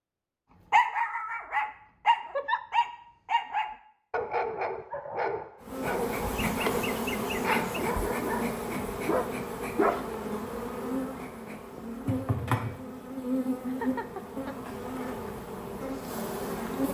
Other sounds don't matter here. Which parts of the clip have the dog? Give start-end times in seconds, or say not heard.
0.7-10.1.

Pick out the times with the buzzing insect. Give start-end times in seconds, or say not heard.
5.6-16.8.